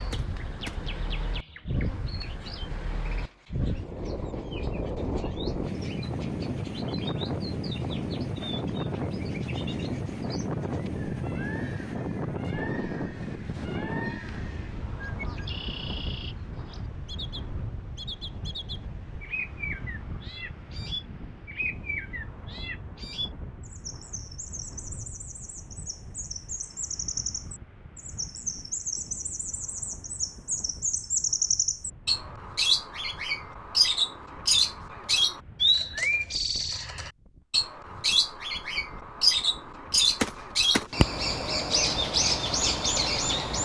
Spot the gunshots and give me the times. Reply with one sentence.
You can hear the gunshots from 0.1 to 0.8 s and from 40.2 to 40.9 s.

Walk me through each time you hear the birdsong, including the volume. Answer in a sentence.
You can hear the birdsong from 0.0 to 43.5 s, getting louder.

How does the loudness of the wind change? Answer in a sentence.
The volume of the wind goes down.